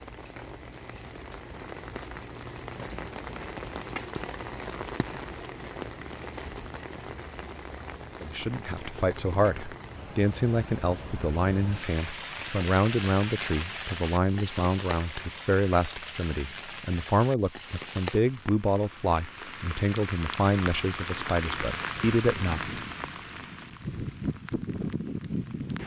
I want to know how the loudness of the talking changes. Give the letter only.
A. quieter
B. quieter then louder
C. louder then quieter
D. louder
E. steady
E.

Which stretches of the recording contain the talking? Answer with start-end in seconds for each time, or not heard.
8.2-22.6.